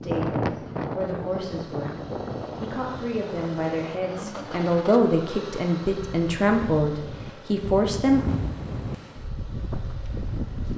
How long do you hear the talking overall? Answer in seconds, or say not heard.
8 s.